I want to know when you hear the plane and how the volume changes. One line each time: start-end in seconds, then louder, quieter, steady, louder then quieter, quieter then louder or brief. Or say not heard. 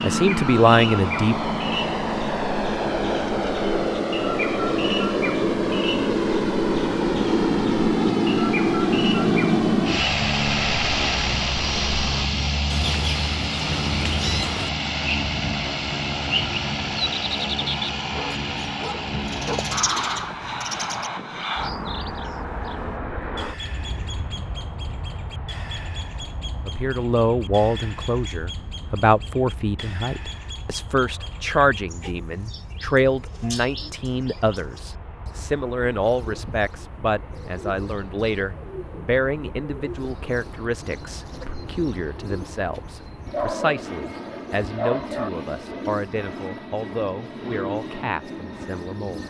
0.0-49.2 quieter then louder.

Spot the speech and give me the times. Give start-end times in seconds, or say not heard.
0.0-1.4, 26.6-49.2.